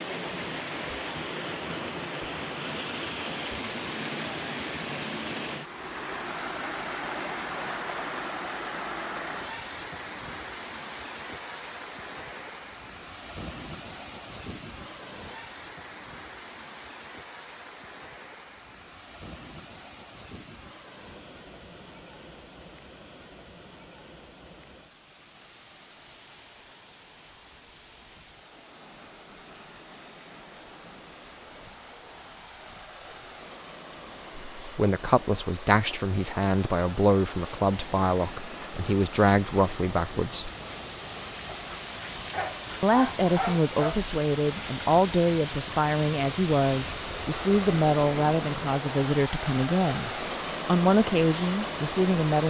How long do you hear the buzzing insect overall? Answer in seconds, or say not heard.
not heard.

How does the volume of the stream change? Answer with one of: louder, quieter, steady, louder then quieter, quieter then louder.
quieter then louder.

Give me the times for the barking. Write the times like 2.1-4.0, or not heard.
41.5-44.0.